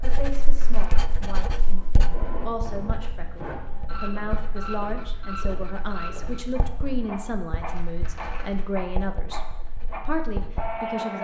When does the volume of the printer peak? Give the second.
11 s.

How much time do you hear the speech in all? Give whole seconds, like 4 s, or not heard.
11 s.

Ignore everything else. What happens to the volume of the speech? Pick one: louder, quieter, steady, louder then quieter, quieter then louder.
louder.